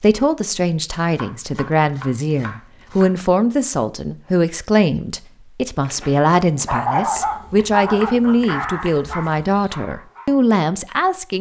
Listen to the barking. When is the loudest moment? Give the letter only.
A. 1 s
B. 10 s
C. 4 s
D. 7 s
D.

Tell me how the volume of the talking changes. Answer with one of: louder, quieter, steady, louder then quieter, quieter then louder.
steady.